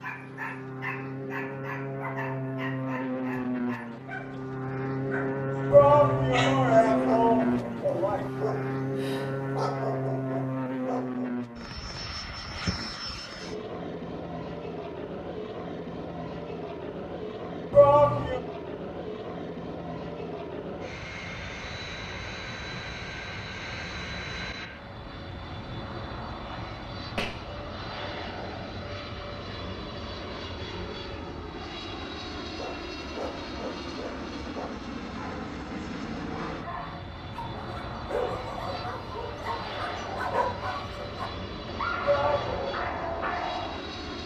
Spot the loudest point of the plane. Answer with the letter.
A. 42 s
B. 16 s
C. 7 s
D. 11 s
C.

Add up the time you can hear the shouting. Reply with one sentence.
The shouting can be heard for 4 seconds in total.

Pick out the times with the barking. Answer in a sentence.
The barking can be heard from 0.0 to 11.3 s and from 32.5 to 43.9 s.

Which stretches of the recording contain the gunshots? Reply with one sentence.
The gunshots can be heard from 27.1 to 28.4 s.